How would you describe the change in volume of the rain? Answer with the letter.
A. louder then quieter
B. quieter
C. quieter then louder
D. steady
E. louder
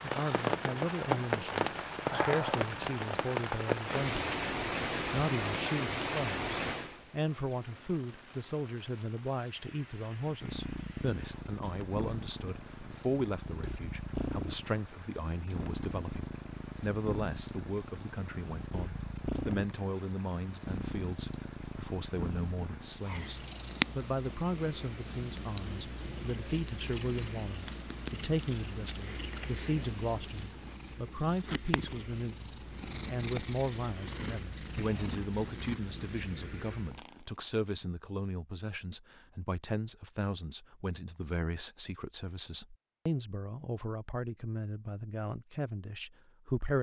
B.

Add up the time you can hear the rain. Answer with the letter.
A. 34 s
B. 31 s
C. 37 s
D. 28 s
B.